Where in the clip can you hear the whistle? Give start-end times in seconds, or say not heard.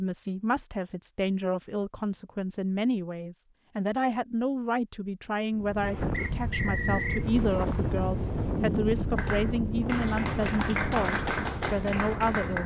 6.1-7.2.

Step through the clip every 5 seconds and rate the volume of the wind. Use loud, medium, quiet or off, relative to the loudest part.
off, loud, loud.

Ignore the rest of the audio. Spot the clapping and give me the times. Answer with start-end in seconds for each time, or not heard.
9.2-12.6.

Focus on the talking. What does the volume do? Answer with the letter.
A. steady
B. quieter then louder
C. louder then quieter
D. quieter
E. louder
A.